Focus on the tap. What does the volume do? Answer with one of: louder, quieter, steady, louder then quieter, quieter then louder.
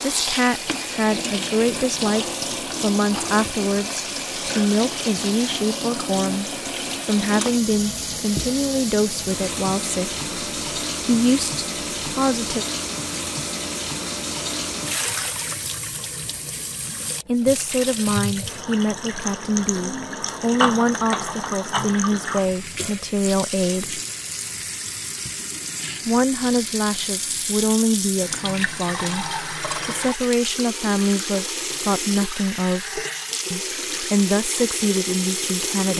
steady.